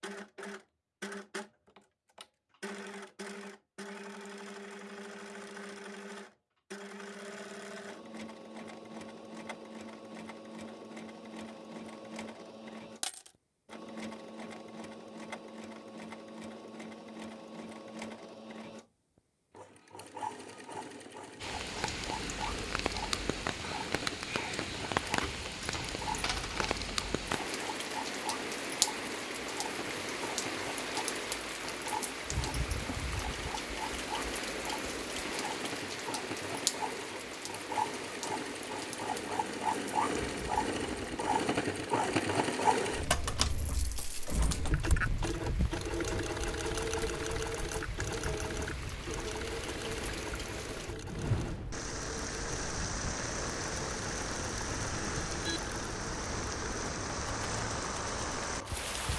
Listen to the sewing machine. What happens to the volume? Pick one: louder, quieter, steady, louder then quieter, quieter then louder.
louder then quieter.